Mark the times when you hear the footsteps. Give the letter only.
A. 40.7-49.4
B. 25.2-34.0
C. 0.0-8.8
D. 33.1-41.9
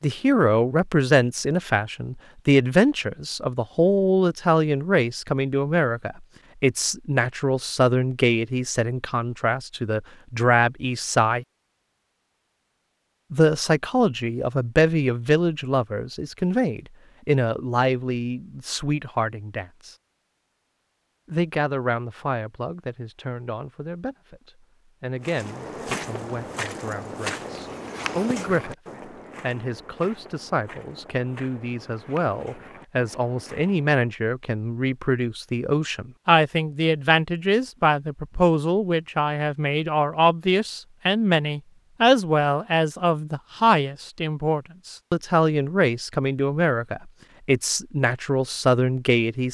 B.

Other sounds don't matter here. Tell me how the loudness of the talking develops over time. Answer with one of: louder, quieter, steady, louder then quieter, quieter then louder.
quieter then louder.